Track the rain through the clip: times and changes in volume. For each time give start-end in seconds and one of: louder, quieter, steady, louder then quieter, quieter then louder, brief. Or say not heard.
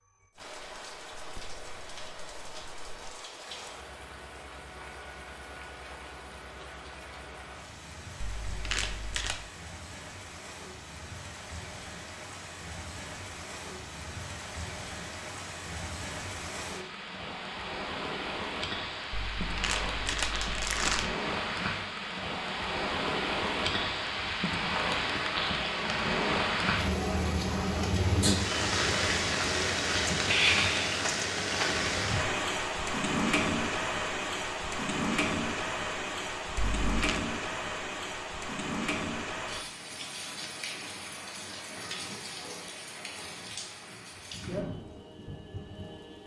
0.1-46.2 louder then quieter.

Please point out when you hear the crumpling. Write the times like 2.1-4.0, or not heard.
8.2-9.4, 19.1-21.1, 36.8-37.2.